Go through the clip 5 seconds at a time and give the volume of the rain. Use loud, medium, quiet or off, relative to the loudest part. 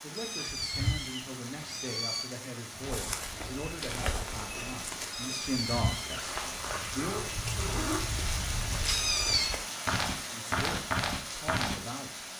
medium, loud, loud.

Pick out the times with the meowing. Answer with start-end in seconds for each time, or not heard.
0.1-2.3, 5.1-6.2, 8.8-9.5.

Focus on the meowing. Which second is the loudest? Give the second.
9 s.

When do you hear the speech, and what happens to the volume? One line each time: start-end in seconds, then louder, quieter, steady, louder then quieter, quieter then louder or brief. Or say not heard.
0.0-7.3 louder
10.2-12.2 brief.